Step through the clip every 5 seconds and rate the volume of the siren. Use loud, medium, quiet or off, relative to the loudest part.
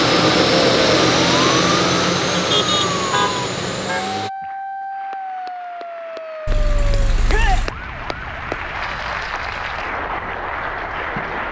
loud, medium, quiet.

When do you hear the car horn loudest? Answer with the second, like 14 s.
3 s.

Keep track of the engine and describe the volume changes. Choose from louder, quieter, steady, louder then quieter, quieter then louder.
quieter.